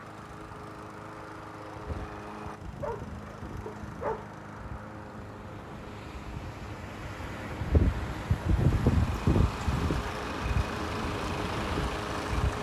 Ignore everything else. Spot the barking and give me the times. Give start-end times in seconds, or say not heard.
2.8-4.3.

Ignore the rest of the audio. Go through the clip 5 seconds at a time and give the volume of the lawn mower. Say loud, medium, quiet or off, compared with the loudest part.
medium, medium, loud.